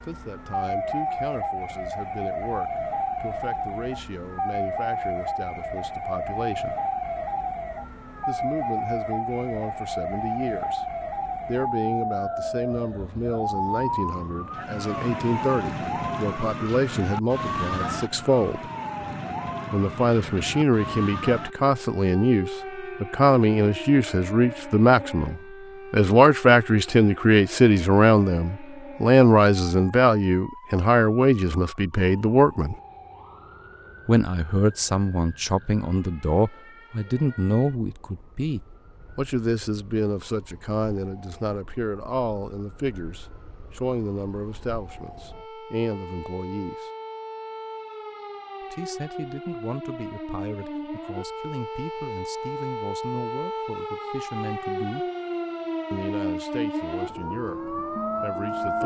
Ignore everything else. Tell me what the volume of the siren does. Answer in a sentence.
The loudness of the siren goes down, then up.